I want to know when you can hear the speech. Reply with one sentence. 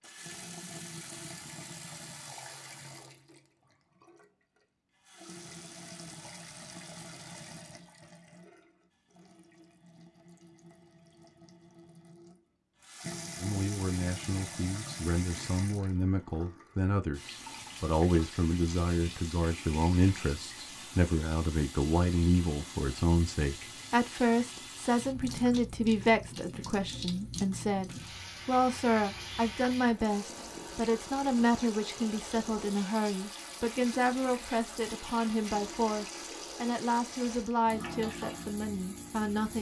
The speech can be heard from 13.4 to 39.5 s.